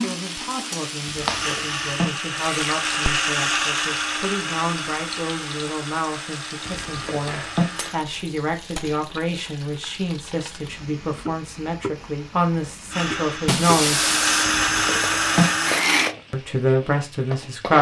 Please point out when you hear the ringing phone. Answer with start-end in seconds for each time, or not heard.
1.1-2.0, 6.7-7.7, 14.4-15.4.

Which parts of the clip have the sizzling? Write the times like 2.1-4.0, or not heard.
0.0-17.7.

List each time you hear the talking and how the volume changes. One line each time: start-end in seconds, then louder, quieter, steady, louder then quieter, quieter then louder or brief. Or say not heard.
0.0-14.1 louder
16.3-17.7 brief.